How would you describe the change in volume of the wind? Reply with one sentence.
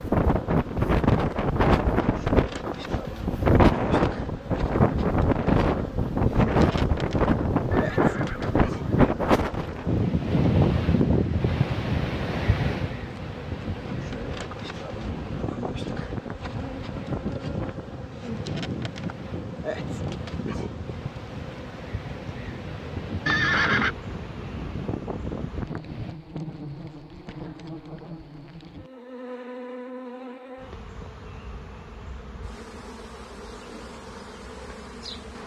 The loudness of the wind goes down.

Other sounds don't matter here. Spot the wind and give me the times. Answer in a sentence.
You can hear the wind from 0.0 to 26.1 s.